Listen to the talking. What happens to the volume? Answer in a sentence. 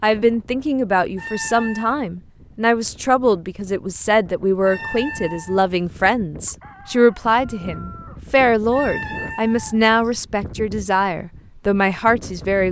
The loudness of the talking stays about the same.